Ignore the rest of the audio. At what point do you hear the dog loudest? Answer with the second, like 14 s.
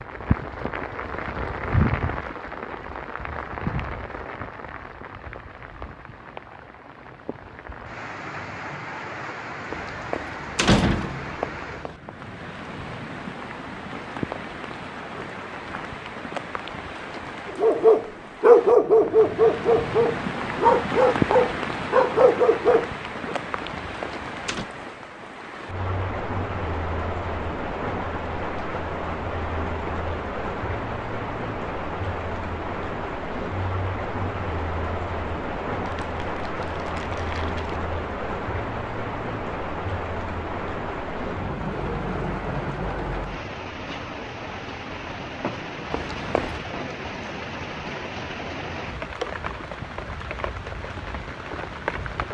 19 s.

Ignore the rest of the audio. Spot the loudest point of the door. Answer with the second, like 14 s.
11 s.